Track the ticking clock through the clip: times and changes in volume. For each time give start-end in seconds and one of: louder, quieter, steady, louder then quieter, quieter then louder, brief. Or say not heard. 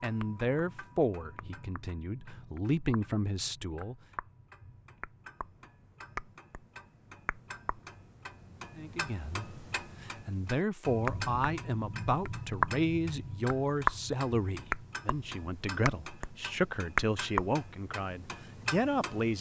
0.0-19.3 louder.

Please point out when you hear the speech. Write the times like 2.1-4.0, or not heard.
0.0-4.0, 8.8-19.3.